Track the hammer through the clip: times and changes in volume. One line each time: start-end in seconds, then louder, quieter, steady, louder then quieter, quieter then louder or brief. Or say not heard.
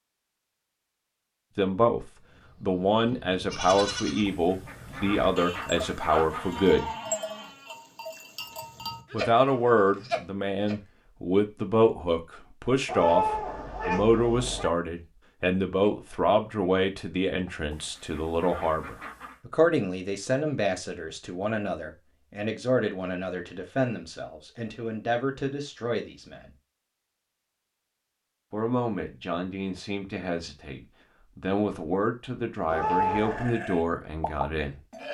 not heard.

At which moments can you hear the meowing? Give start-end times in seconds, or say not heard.
12.8-14.7, 32.6-33.5.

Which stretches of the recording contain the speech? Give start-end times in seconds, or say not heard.
1.6-6.9, 9.1-26.5, 28.5-34.8.